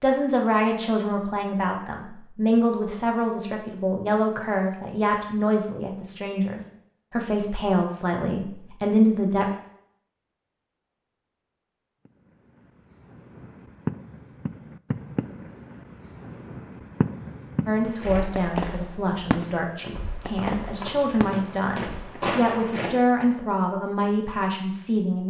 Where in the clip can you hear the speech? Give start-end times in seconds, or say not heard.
0.0-9.4, 17.6-25.2.